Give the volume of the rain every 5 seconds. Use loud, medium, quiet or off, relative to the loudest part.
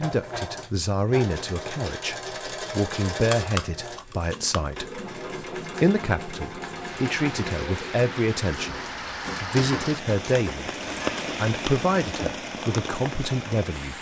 off, loud, loud.